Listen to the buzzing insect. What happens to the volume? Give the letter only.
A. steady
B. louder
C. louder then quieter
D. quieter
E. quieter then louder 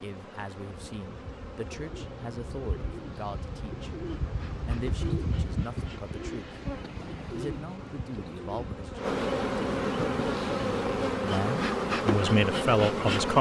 B.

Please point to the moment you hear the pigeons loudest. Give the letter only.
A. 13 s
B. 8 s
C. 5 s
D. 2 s
C.